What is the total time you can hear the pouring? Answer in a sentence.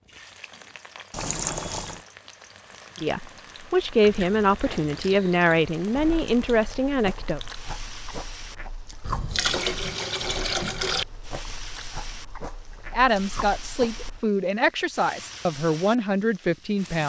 You can hear the pouring for 3 seconds altogether.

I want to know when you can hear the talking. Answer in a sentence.
You can hear the talking from 3.0 to 7.4 s and from 12.9 to 17.0 s.